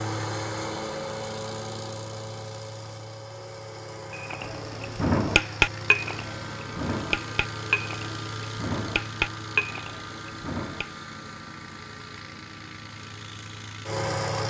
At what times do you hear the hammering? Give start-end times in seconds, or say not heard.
4.3-10.8.